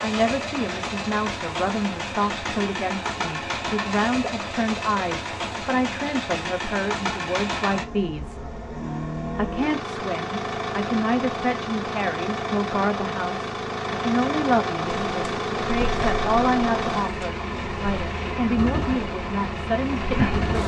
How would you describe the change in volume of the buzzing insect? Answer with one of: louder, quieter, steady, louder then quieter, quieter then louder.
steady.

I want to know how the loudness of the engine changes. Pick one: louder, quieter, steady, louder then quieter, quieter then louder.
steady.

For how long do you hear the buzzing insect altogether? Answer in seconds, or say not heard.
6 s.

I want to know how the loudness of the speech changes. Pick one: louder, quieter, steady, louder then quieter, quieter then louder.
steady.